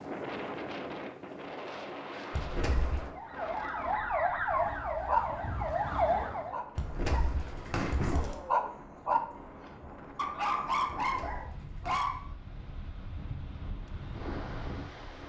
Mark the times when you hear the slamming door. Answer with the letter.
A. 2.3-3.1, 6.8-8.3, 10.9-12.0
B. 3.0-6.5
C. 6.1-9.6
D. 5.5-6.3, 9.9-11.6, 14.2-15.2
A.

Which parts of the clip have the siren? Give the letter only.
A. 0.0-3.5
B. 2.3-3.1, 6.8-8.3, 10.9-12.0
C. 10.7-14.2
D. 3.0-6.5
D.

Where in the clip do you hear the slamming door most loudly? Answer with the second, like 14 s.
8 s.